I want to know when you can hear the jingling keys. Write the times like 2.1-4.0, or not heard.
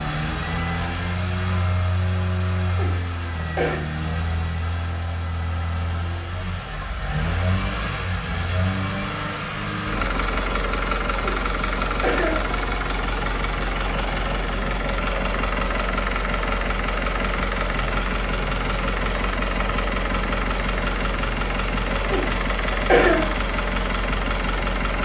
not heard.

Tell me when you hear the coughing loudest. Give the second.
23 s.